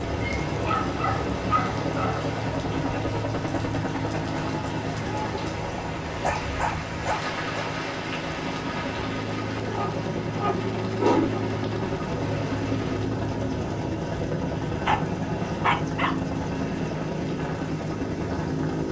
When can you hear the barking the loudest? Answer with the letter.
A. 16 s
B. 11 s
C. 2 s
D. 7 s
B.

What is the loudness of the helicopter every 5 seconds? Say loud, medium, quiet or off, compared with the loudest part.
loud, medium, loud, loud.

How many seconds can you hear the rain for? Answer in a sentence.
You can hear the rain for 13 seconds altogether.